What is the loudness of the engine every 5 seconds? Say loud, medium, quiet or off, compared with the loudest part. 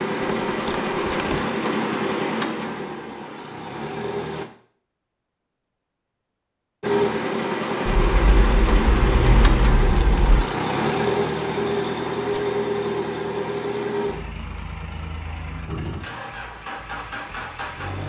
loud, loud, loud, medium.